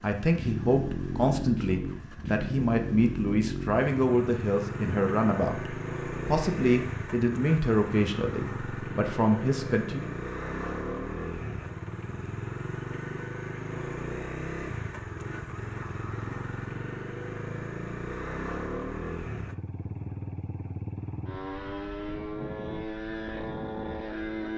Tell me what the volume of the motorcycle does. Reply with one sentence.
The volume of the motorcycle stays about the same.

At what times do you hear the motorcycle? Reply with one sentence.
You can hear the motorcycle from 0.0 to 24.5 s.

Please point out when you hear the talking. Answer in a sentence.
You can hear the talking from 0.0 to 10.1 s.